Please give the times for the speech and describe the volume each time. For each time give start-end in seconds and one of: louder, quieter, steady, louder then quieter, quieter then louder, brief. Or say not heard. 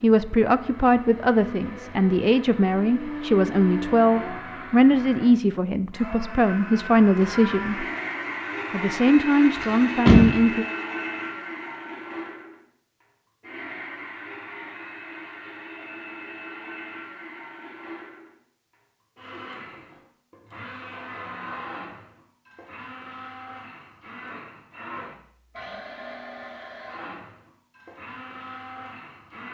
0.0-7.8 steady
8.7-10.7 brief.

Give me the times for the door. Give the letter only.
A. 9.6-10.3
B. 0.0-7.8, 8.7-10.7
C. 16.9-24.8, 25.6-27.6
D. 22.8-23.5
A.